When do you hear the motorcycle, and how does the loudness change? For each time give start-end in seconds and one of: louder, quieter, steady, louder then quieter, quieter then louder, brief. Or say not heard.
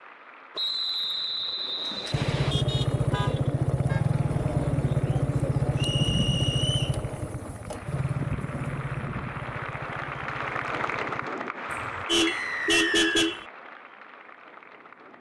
2.1-11.3 quieter.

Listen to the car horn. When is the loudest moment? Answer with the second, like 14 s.
13 s.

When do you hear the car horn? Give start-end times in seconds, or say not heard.
2.4-4.0, 11.7-13.4.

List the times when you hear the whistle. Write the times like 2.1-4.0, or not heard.
0.6-2.5, 5.8-7.0, 12.2-13.3.